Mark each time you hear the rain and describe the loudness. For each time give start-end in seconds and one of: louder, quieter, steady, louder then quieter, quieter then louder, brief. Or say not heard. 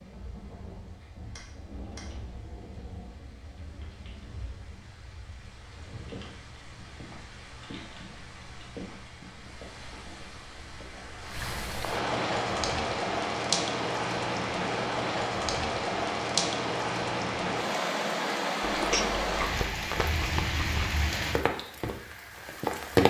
0.0-23.0 louder.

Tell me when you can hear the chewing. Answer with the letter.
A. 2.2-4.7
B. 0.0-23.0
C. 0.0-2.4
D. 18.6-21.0
D.